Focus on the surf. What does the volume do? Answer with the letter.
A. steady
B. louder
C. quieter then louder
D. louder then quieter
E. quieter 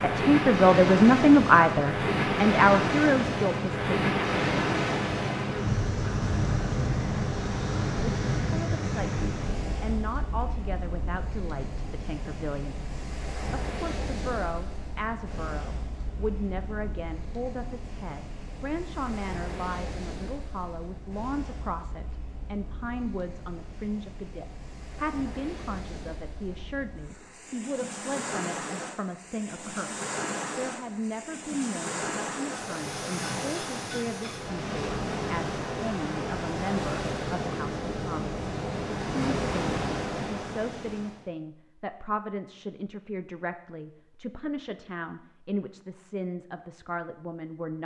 C.